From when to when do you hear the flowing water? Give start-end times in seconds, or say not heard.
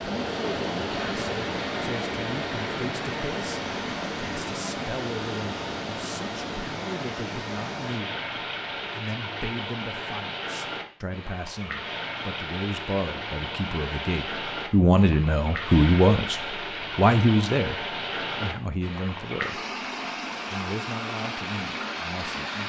0.0-22.6.